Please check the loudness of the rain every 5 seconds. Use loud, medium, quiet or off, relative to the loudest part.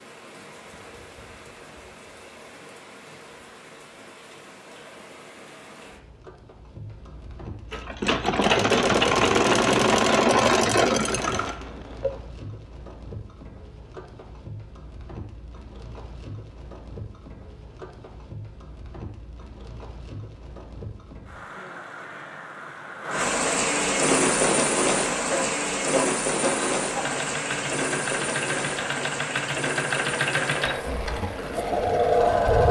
quiet, quiet, quiet, quiet, loud, loud, medium.